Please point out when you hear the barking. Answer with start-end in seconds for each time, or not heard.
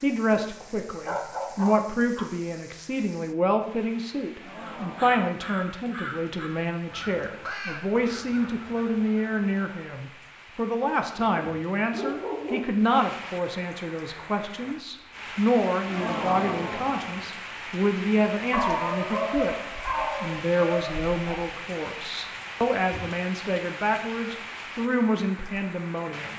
1.1-2.3, 11.2-12.7, 18.5-21.4.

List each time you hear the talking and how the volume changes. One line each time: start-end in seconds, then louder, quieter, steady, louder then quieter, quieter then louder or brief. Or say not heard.
0.0-26.3 steady.